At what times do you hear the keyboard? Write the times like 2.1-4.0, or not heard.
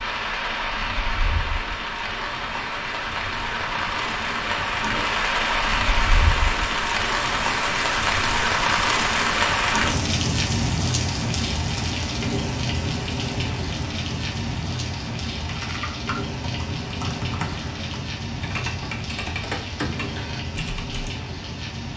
15.4-21.1.